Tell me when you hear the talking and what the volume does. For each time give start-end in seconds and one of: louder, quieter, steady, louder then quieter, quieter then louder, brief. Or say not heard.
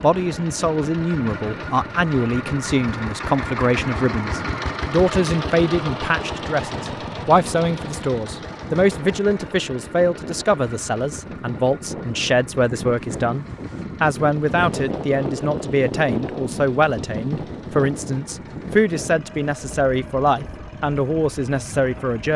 0.0-22.3 steady.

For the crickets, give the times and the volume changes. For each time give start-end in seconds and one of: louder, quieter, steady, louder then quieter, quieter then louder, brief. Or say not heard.
not heard.